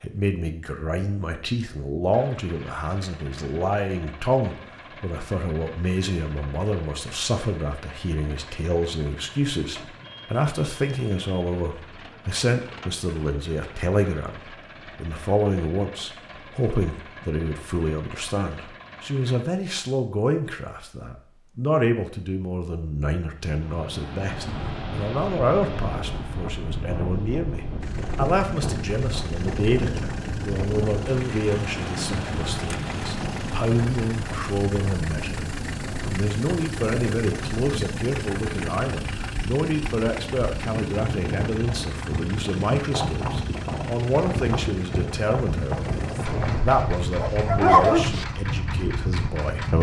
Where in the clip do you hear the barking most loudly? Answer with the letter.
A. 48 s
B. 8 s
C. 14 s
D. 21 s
A.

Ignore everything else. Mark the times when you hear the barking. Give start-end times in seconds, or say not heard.
46.4-48.2.